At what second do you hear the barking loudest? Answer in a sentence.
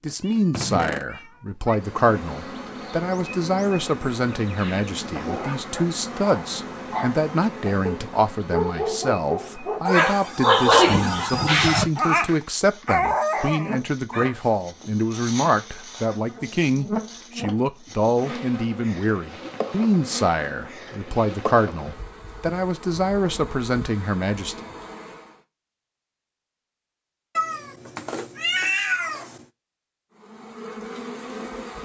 The volume of the barking peaks at 11 seconds.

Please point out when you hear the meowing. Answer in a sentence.
You can hear the meowing from 0.1 to 1.8 s and from 27.4 to 29.4 s.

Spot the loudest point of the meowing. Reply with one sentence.
The loudest moment of the meowing is at 29 seconds.